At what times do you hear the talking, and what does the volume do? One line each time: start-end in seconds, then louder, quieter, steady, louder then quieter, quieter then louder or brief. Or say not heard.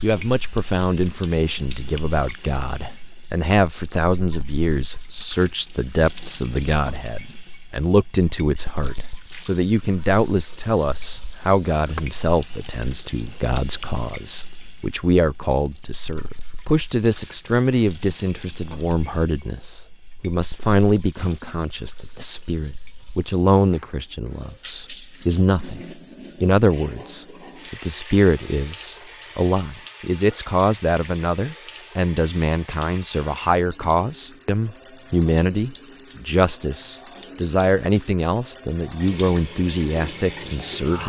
0.0-41.0 steady.